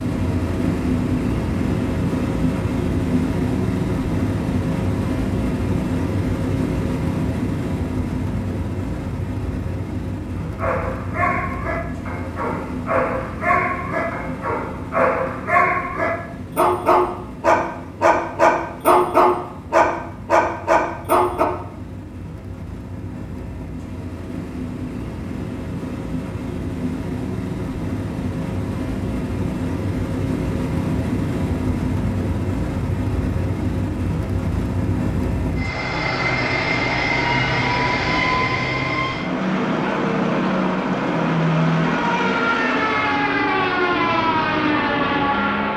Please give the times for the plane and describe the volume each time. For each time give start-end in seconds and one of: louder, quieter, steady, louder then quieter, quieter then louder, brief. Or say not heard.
0.0-45.7 quieter then louder.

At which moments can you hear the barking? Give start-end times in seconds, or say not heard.
10.3-21.4.